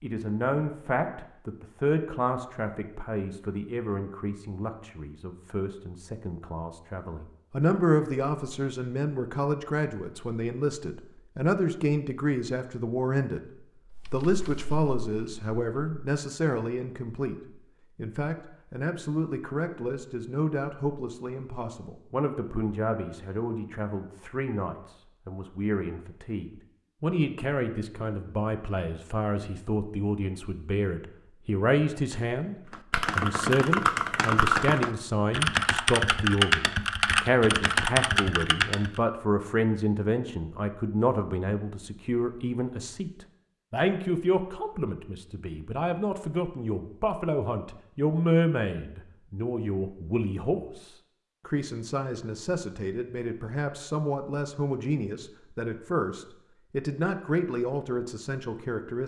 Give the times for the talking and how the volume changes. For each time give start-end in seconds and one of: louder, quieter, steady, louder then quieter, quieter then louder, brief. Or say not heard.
0.0-59.0 steady.